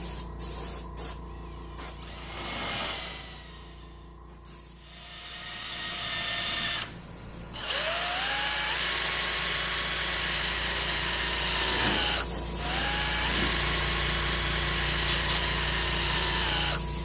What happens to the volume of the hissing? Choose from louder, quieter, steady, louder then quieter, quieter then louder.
quieter then louder.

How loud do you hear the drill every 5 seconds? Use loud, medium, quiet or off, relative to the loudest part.
medium, loud, loud, loud.